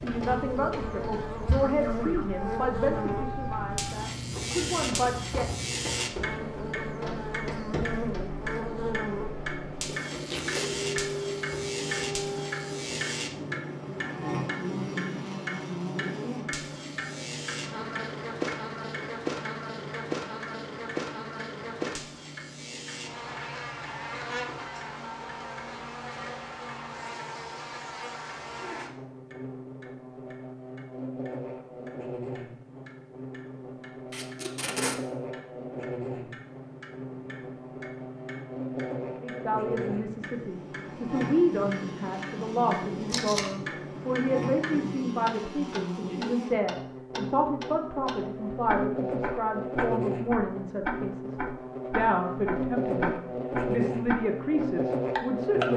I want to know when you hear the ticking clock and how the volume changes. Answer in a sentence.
You can hear the ticking clock from 0.0 to 55.7 s, getting quieter then louder.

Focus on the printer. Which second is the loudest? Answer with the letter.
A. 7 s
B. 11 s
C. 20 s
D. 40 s
B.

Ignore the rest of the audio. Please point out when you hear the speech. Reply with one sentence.
You can hear the speech from 0.0 to 5.5 s, from 39.2 to 51.4 s and from 52.0 to 55.7 s.